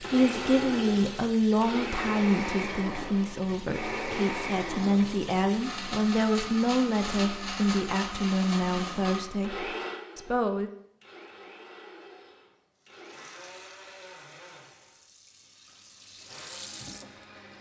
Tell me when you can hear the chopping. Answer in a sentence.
The chopping can't be heard in this clip.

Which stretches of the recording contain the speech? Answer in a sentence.
The speech can be heard from 0.0 to 10.7 s.